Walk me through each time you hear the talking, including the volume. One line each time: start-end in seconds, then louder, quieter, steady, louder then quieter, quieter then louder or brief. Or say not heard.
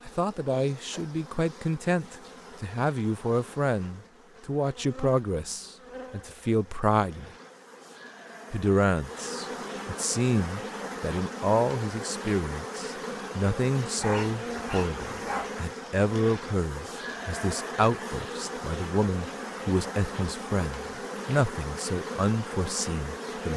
0.1-7.3 steady
8.5-23.5 steady.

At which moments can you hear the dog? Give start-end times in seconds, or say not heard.
13.9-15.5.